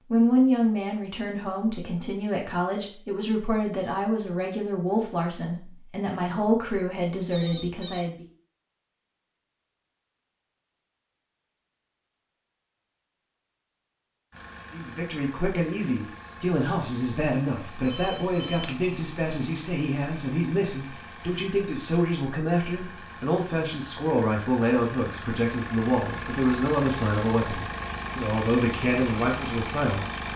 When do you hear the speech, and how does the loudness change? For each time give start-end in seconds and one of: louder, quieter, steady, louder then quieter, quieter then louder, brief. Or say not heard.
0.1-8.2 steady
14.7-30.2 steady.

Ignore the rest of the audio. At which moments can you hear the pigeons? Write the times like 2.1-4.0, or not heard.
not heard.